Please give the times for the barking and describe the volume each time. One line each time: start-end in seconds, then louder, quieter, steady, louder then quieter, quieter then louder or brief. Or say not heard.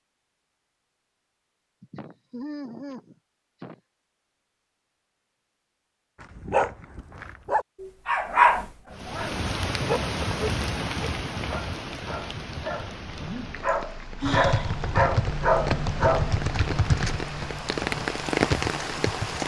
6.2-17.1 quieter then louder.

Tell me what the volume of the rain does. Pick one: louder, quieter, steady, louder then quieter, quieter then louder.
quieter then louder.